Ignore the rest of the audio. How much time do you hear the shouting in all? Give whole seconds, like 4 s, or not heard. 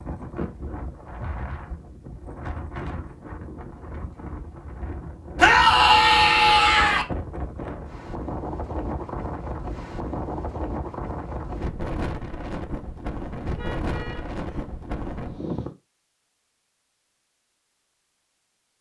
2 s.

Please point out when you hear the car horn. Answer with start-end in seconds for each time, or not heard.
13.5-14.7.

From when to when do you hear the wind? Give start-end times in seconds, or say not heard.
0.0-15.8.